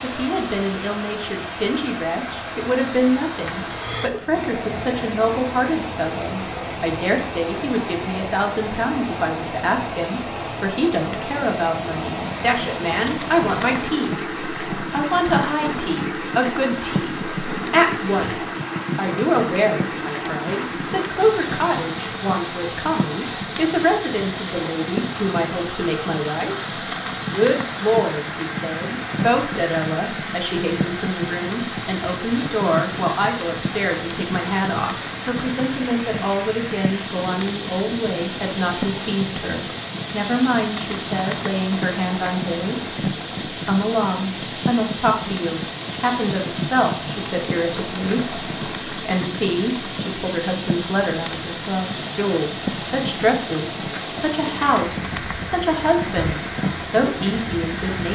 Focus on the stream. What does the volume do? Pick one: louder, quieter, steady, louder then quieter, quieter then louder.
steady.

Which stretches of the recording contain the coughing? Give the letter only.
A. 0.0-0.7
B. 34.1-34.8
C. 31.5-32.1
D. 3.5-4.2
D.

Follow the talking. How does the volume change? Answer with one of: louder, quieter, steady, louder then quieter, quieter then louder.
steady.